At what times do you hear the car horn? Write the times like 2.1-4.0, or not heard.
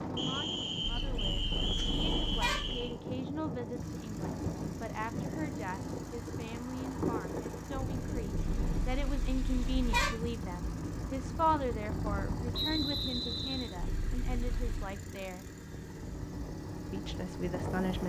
0.8-2.9, 8.3-10.2, 13.8-14.9.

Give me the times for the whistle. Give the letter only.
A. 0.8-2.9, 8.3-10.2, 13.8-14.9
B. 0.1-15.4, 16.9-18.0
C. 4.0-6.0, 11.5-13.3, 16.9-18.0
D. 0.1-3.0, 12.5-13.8
D.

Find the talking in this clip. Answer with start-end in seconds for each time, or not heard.
0.1-15.4, 16.9-18.0.